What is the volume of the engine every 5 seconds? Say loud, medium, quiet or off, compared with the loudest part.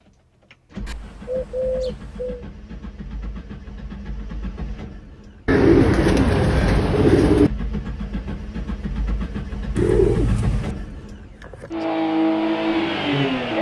quiet, medium, loud.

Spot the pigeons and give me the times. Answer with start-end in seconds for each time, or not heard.
0.8-2.5, 5.5-7.5, 9.8-10.7.